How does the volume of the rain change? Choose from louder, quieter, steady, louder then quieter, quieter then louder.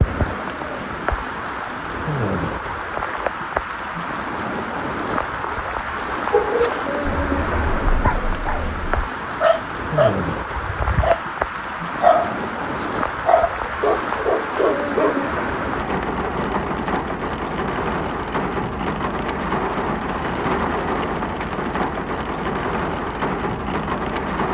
steady.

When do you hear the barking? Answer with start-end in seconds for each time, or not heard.
6.3-15.2.